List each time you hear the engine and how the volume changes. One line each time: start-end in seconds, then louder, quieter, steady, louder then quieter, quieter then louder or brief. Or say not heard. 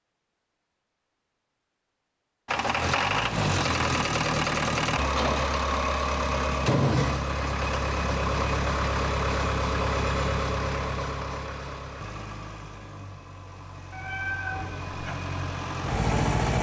2.5-16.5 quieter.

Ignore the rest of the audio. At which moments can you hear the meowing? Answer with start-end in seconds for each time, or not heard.
13.9-15.2.